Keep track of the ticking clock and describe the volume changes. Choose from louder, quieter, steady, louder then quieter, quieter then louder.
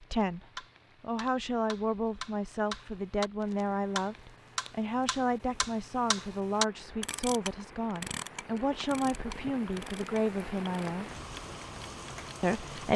louder then quieter.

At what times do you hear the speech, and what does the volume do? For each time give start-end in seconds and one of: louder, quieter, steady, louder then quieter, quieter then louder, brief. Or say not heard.
0.0-11.1 steady
12.4-12.9 brief.